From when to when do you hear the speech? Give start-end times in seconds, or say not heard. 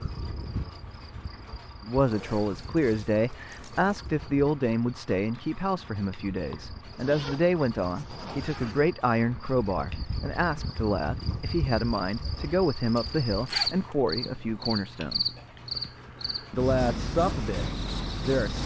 1.8-15.3, 16.5-18.6.